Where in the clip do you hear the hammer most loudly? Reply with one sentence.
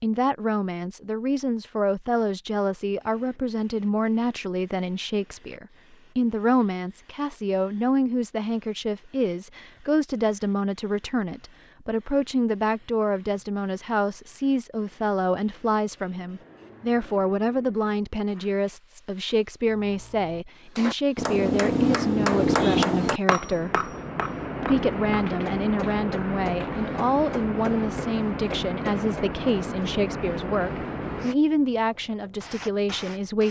The loudest moment of the hammer is at 23 seconds.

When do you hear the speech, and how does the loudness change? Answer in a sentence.
You can hear the speech from 0.0 to 23.9 s, at a steady volume; and from 24.6 to 33.4 s, at a steady volume.